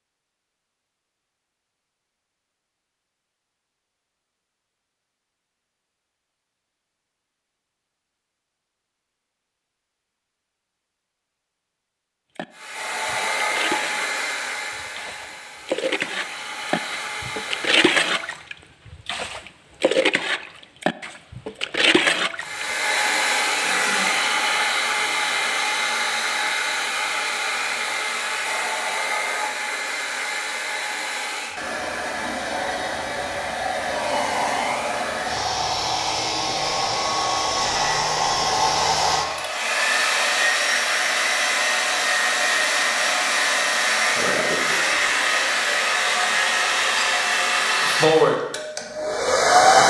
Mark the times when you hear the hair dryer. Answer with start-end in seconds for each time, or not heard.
12.6-18.4, 22.4-49.8.